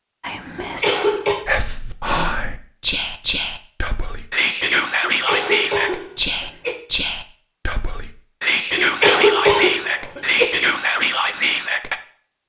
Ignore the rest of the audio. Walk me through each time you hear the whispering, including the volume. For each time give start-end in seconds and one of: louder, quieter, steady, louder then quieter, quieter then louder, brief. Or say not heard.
0.2-12.0 steady.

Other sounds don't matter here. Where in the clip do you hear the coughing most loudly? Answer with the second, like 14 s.
9 s.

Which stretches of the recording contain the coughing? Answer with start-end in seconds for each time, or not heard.
0.6-1.4, 5.0-6.8, 8.8-10.5.